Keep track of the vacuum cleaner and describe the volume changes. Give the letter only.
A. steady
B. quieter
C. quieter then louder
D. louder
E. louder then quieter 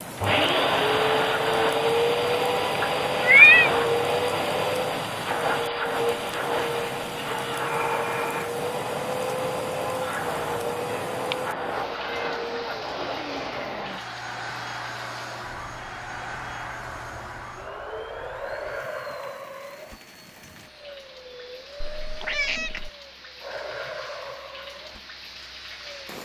B.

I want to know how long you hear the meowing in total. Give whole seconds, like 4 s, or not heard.
4 s.